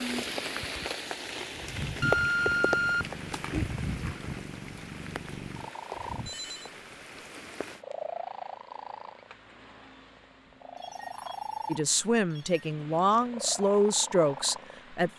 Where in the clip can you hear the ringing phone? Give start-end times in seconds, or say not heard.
2.0-3.1, 6.2-7.2, 10.4-12.7.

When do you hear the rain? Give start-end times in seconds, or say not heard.
0.0-7.8.